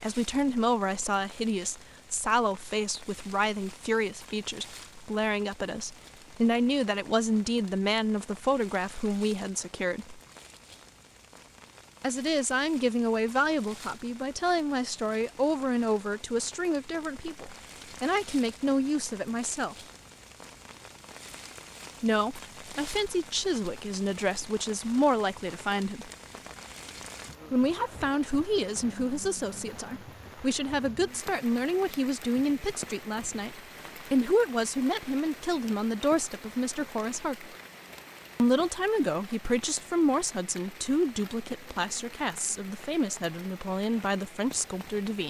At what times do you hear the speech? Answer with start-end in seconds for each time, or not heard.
0.0-10.2, 12.0-19.8, 22.0-26.1, 27.5-37.5, 38.4-45.2.